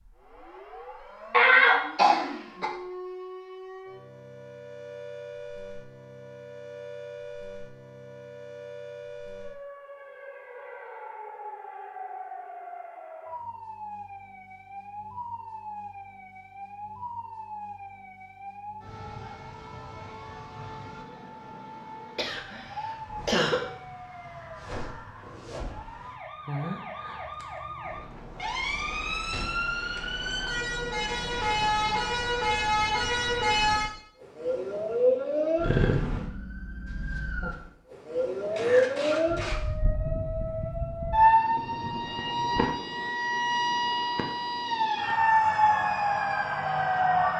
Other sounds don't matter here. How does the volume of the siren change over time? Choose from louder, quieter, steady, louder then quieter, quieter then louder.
louder.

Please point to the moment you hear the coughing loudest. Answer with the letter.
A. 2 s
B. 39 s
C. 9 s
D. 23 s
A.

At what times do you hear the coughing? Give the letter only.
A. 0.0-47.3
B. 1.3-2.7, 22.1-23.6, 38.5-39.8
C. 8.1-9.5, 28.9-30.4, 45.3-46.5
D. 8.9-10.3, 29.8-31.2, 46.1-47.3
B.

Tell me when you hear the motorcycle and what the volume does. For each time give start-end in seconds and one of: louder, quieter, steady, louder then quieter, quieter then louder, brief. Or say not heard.
not heard.